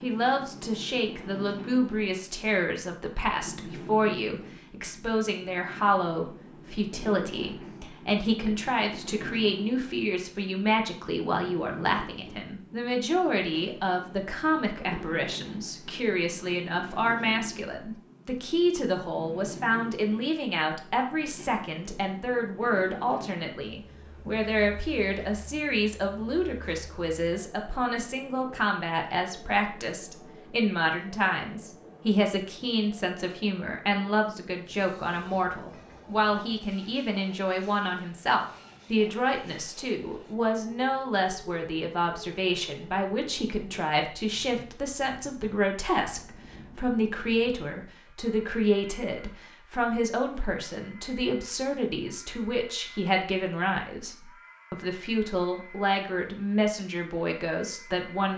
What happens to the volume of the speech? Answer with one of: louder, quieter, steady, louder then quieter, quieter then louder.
steady.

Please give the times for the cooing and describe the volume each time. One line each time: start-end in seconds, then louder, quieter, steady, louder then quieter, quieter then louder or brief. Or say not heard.
not heard.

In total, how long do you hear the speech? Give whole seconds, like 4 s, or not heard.
58 s.